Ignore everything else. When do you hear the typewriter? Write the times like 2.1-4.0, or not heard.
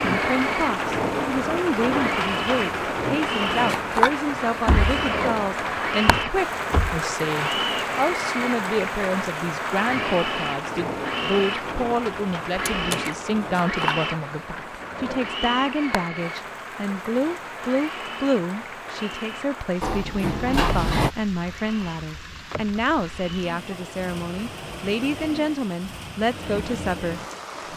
not heard.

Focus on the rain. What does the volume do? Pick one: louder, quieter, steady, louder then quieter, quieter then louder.
quieter.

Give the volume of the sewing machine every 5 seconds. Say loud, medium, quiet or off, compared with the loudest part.
loud, loud, loud, medium, quiet, medium.